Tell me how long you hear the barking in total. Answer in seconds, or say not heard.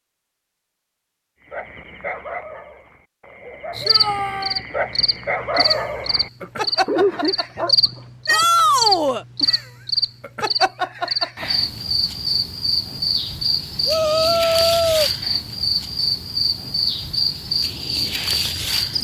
7 s.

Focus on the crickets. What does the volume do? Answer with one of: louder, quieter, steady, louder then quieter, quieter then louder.
steady.